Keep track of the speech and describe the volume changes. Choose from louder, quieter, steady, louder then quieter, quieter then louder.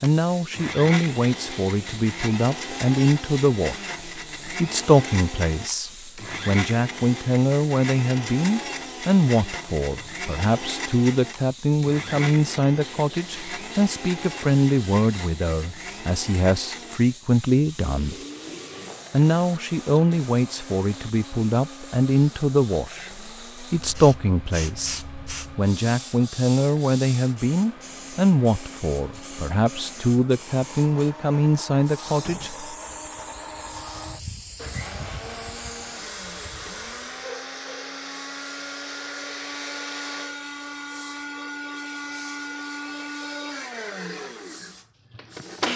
steady.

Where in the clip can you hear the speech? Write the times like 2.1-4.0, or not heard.
0.0-18.1, 19.1-32.6.